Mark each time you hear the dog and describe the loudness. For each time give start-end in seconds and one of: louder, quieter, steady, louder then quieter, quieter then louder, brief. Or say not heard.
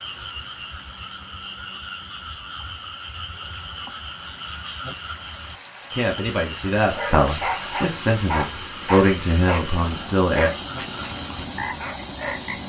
6.8-12.5 quieter.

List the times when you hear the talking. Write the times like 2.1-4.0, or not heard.
5.9-10.5.